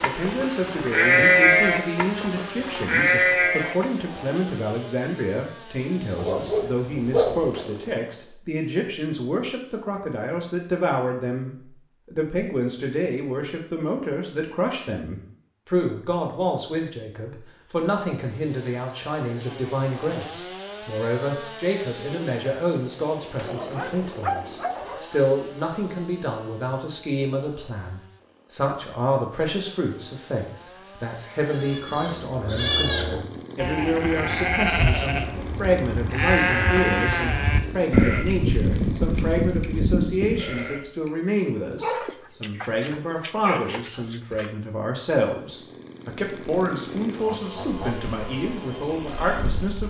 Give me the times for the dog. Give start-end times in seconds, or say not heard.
6.2-7.7, 23.4-25.1, 41.8-44.5.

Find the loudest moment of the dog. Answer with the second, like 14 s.
7 s.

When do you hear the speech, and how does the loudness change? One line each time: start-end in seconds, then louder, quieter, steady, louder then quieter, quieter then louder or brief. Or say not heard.
0.0-49.8 steady.